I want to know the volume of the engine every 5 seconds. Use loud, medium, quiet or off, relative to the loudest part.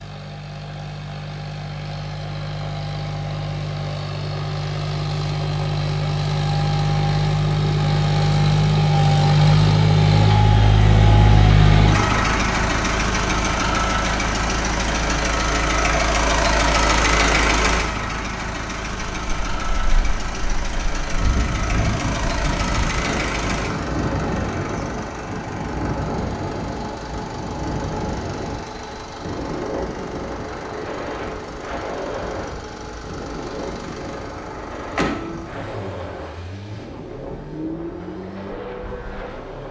medium, loud, loud, loud, medium, quiet, quiet, quiet.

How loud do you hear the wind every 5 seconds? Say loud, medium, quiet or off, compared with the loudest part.
off, off, off, off, loud, loud, medium, medium.